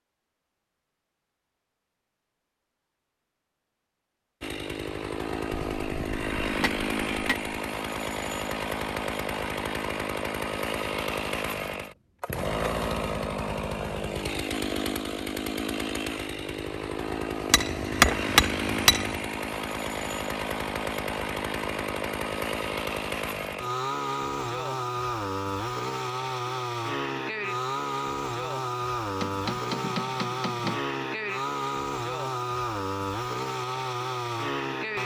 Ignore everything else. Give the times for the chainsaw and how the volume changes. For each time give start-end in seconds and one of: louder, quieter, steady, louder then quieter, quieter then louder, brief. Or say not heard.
4.4-35.0 steady.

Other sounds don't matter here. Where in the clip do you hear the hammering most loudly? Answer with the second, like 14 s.
18 s.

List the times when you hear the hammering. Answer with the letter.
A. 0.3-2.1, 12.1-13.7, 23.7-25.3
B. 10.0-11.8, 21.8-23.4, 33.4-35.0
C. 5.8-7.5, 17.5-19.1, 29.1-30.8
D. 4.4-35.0
C.